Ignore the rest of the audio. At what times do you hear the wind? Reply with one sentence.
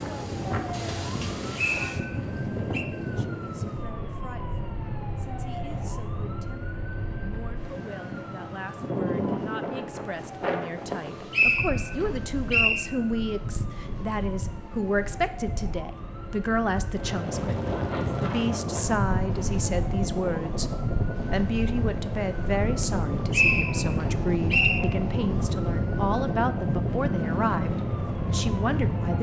The wind can be heard from 0.0 to 29.1 s.